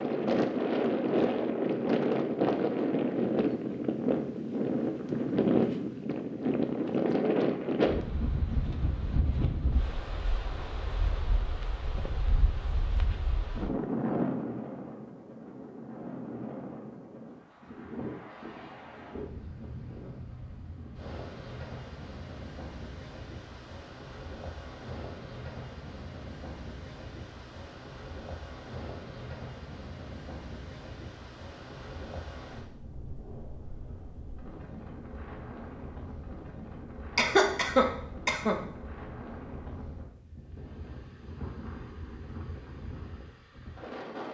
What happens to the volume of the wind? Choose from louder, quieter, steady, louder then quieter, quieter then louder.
quieter.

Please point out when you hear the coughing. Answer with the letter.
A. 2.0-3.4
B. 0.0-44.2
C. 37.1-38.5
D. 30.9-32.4
C.